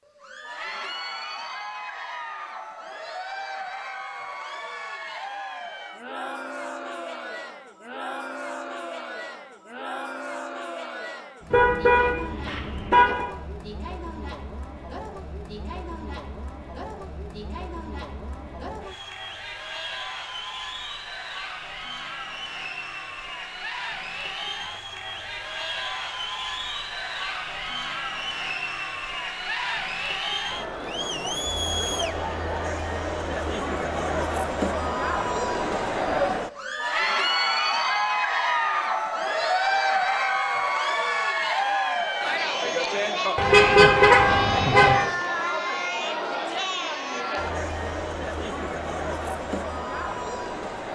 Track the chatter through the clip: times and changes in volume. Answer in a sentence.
You can hear the chatter from 0.1 to 50.8 s, getting louder.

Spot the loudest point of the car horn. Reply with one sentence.
The volume of the car horn peaks at 44 seconds.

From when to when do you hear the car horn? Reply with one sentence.
You can hear the car horn from 11.5 to 13.2 s and from 43.4 to 45.0 s.